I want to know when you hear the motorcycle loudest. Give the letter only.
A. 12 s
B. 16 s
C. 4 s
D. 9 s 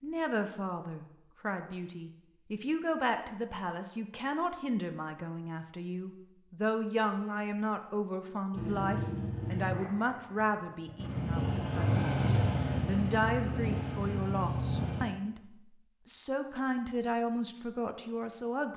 A.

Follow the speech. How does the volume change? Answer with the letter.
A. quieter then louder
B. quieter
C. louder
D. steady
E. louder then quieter
D.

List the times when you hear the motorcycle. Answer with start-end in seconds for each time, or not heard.
8.6-15.1.